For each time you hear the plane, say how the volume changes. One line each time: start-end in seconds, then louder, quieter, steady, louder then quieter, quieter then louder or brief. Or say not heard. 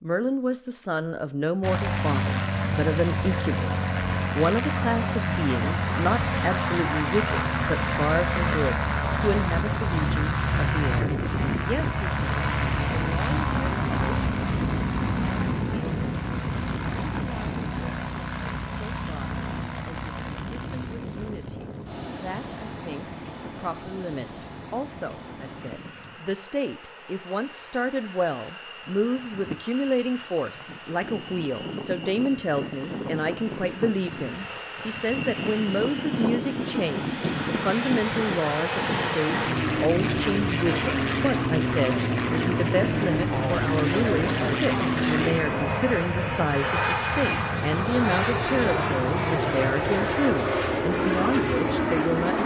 1.6-52.4 quieter then louder.